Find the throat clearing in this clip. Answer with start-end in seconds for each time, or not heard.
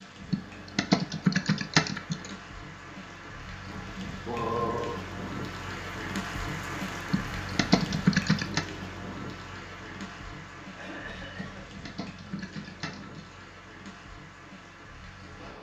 3.7-5.0, 10.7-11.8.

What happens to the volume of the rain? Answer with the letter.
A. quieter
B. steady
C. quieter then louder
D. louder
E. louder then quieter
E.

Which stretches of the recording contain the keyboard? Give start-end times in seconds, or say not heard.
0.3-2.3, 7.1-8.7, 11.3-13.4.